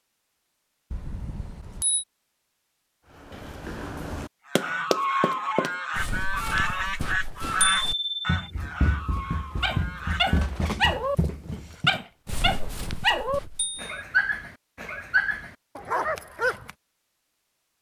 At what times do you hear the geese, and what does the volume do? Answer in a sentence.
The geese can be heard from 4.5 to 10.5 s, getting quieter.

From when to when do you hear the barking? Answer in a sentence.
You can hear the barking from 9.6 to 16.7 s.